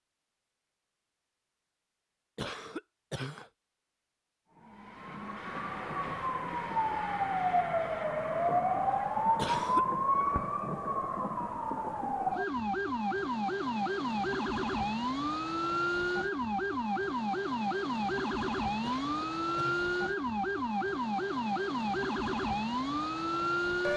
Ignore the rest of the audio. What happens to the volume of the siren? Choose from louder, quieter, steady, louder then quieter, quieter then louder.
steady.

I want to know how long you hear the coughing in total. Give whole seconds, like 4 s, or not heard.
3 s.